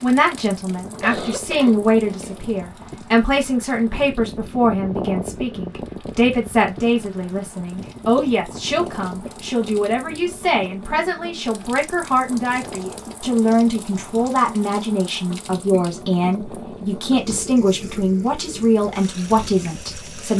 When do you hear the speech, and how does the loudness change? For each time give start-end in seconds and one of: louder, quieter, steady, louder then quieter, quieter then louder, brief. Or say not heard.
0.0-20.3 steady.